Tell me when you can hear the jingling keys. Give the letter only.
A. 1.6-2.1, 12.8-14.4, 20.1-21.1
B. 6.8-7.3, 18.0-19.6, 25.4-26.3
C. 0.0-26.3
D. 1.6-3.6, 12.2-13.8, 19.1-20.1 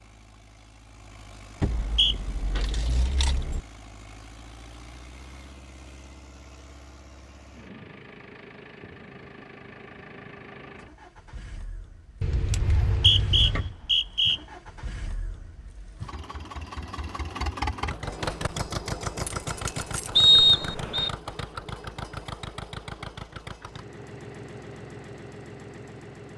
D.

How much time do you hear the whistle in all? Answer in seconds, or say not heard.
3 s.